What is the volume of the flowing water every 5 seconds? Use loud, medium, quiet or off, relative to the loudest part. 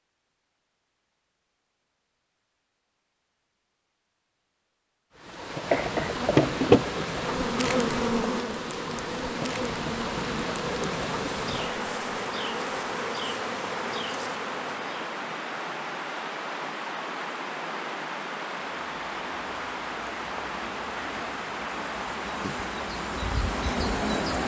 off, loud, loud, loud, loud.